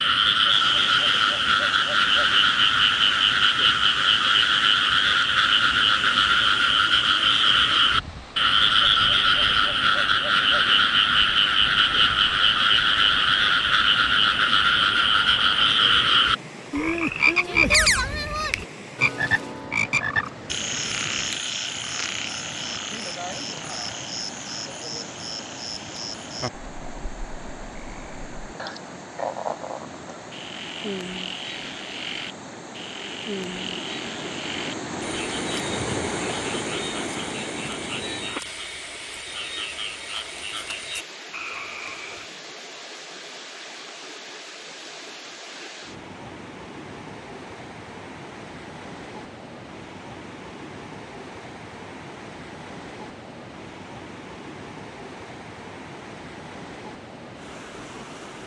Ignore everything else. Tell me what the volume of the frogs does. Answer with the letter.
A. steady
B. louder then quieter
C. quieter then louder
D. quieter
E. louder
D.